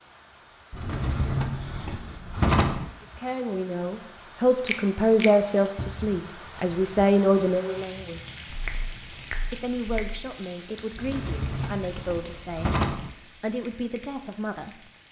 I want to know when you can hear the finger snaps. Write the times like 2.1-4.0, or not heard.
4.7-5.3, 8.4-10.3.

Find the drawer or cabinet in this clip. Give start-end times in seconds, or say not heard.
0.7-2.9, 5.8-6.2, 10.9-13.1.